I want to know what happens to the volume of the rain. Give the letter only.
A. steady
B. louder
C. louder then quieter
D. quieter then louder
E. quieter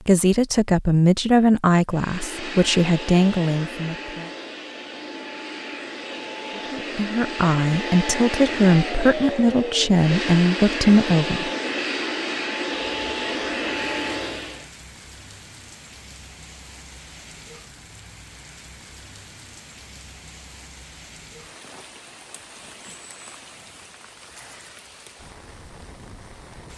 A.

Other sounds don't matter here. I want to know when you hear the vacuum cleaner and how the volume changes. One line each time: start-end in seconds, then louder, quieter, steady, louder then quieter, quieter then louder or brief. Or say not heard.
1.9-14.7 louder.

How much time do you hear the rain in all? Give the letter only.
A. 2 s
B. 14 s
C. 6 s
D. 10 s
B.